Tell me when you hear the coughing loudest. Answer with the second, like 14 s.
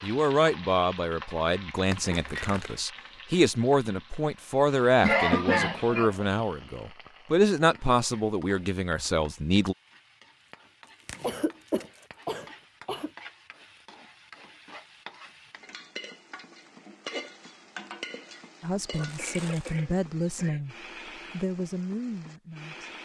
5 s.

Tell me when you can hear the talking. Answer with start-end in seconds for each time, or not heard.
0.0-9.8, 18.6-22.9.